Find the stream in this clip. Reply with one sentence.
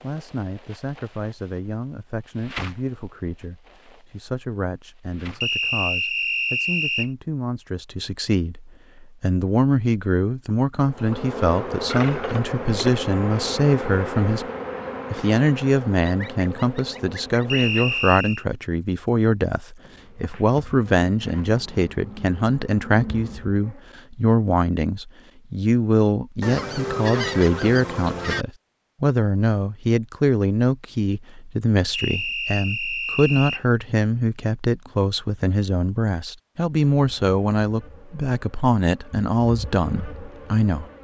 You can't hear the stream here.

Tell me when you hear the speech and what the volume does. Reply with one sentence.
The speech can be heard from 0.0 to 14.4 s, getting louder; and from 15.1 to 40.9 s, at a steady volume.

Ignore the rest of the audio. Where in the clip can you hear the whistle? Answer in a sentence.
The whistle can be heard from 5.4 to 7.1 s, from 17.4 to 18.4 s and from 31.9 to 33.6 s.